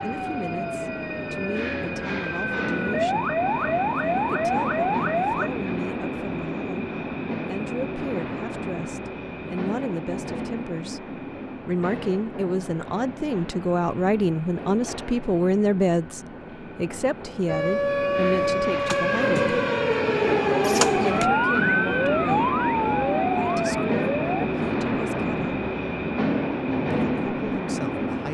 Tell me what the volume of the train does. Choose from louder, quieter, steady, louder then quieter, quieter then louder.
quieter then louder.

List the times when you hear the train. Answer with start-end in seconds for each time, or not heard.
0.0-28.2.